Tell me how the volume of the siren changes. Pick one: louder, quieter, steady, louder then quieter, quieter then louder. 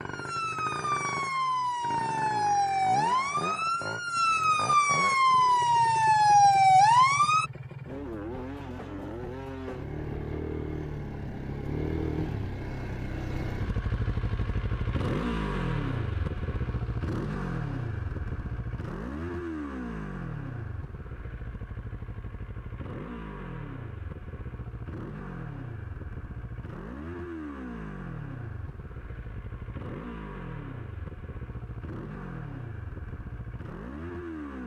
louder.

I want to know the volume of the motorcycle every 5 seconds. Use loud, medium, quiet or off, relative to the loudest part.
medium, medium, loud, loud, medium, medium, medium.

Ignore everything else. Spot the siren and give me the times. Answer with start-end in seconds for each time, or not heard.
0.0-7.5.